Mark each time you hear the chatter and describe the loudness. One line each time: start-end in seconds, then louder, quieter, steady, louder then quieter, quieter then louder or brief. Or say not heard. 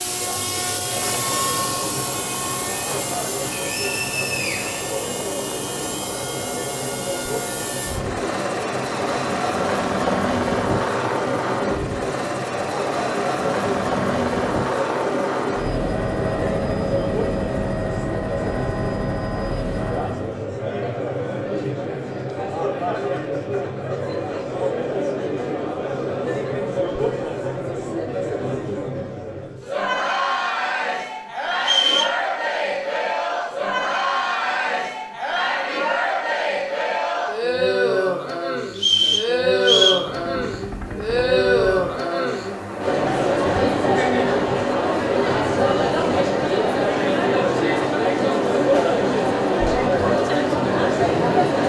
0.0-51.6 louder.